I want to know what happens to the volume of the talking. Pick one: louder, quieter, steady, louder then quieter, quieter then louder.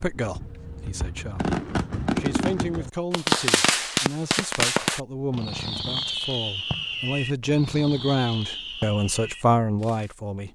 louder.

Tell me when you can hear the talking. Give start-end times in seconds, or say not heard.
0.0-10.5.